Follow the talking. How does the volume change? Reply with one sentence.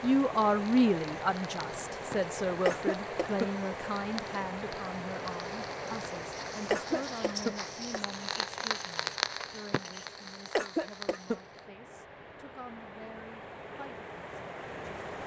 The volume of the talking goes down.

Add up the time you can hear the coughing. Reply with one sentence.
You can hear the coughing for 3 seconds altogether.